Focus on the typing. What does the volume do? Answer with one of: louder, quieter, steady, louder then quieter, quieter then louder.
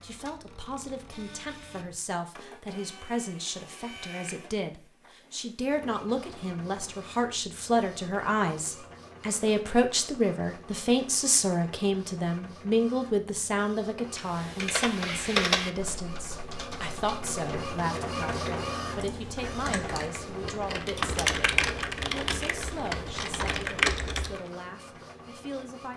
quieter then louder.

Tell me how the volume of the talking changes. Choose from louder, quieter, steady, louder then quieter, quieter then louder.
louder then quieter.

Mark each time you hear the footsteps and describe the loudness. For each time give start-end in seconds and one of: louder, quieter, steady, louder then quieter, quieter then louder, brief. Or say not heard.
not heard.